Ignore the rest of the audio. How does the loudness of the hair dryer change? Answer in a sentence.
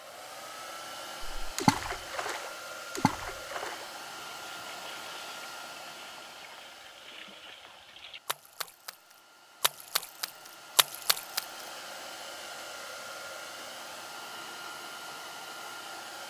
The volume of the hair dryer goes down, then up.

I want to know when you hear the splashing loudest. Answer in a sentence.
The loudest moment of the splashing is at 2 seconds.